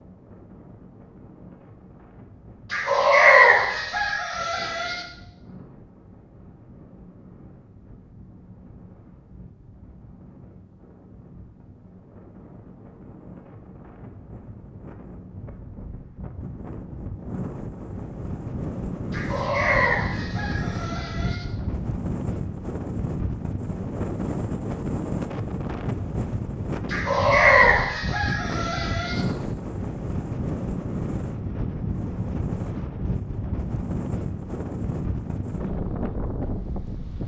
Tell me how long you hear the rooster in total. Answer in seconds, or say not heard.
7 s.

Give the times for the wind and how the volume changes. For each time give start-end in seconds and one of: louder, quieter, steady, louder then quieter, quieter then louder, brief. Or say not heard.
0.0-37.2 louder.